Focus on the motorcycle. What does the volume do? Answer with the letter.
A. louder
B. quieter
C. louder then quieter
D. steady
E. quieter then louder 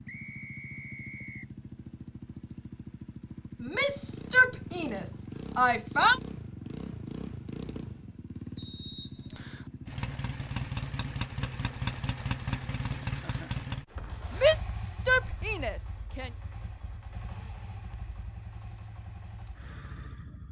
C.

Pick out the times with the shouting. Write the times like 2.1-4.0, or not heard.
3.6-6.2, 14.4-16.3.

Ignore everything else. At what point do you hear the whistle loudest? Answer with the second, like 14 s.
9 s.